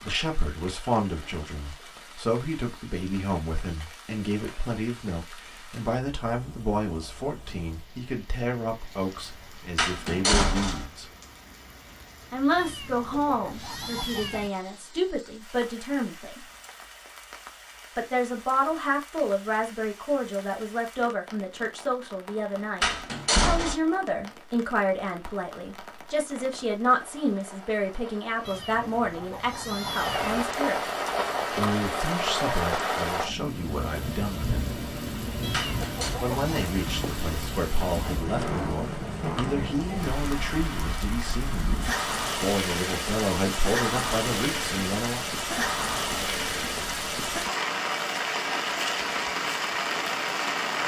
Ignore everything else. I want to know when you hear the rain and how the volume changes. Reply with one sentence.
The rain can be heard from 0.0 to 50.8 s, getting louder.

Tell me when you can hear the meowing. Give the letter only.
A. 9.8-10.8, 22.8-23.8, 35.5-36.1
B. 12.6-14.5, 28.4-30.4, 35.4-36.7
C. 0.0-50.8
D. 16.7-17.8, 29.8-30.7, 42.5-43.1
B.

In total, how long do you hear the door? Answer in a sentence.
You can hear the door for 3 seconds altogether.